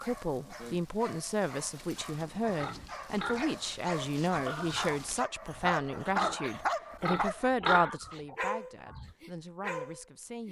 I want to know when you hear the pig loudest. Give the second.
8 s.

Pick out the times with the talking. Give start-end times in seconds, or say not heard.
0.0-10.4.